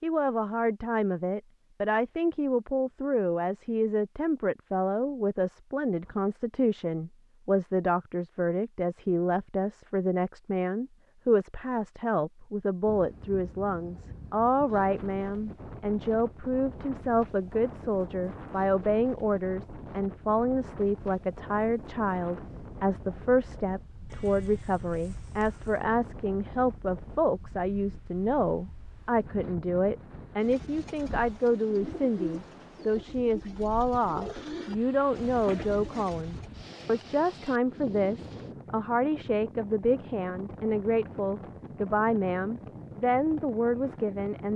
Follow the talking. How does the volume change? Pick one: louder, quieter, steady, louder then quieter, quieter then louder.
steady.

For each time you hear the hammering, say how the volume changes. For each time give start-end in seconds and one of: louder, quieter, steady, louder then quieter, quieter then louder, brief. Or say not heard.
not heard.